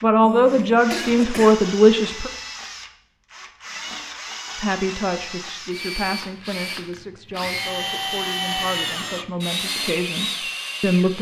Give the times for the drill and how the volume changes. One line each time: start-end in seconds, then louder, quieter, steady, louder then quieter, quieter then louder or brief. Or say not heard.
0.0-11.1 louder.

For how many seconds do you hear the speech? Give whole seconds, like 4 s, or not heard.
9 s.